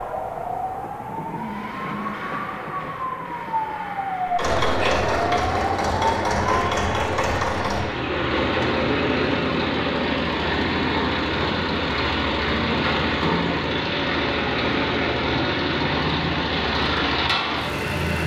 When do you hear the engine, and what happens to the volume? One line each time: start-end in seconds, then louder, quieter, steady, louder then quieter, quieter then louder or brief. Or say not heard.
4.2-18.2 steady.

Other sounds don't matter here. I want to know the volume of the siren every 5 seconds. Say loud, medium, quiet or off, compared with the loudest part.
loud, loud, off, off.